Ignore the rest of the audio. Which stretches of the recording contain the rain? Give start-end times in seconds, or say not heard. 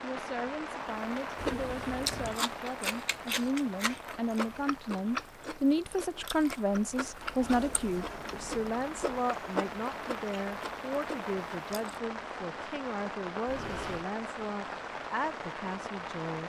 0.0-16.4.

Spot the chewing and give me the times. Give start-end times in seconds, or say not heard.
0.8-12.0.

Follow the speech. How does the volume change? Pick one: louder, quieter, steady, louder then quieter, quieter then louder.
louder then quieter.